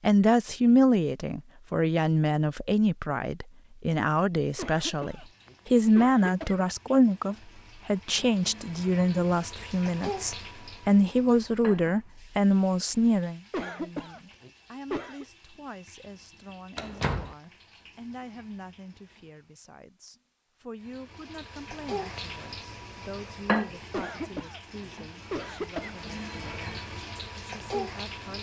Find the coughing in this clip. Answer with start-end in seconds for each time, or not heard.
4.5-6.5, 13.5-15.2, 23.9-25.9.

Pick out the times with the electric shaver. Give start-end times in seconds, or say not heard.
not heard.